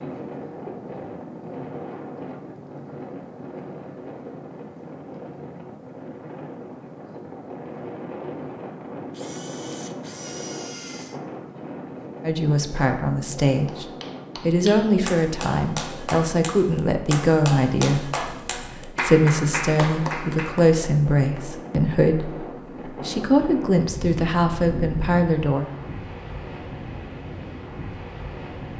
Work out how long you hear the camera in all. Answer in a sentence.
The camera can be heard for 2 seconds in total.